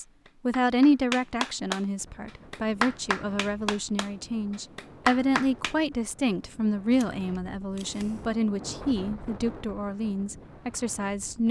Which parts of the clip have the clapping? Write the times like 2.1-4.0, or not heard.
0.0-1.8, 2.5-4.1, 4.8-5.8.